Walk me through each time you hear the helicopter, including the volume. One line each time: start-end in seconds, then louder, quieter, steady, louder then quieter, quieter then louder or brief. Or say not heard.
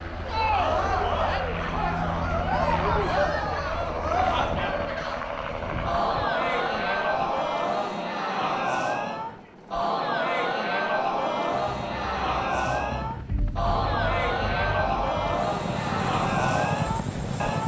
0.0-17.6 quieter then louder.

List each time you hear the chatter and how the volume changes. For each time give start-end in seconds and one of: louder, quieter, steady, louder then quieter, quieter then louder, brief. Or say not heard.
0.1-17.6 steady.